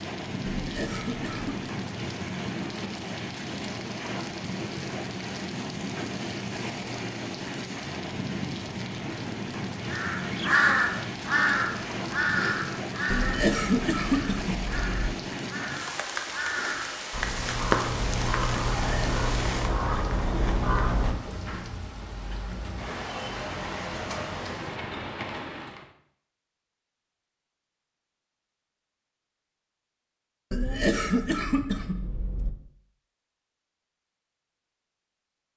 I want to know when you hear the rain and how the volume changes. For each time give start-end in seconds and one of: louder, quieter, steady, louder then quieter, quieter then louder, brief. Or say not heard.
0.0-25.9 steady.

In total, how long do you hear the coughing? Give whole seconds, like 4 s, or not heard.
5 s.